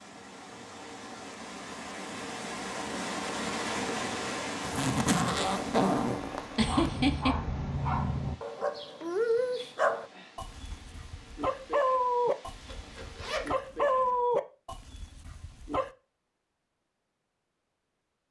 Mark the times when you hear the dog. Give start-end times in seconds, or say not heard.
6.5-15.9.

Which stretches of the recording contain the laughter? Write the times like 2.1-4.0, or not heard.
6.5-7.3.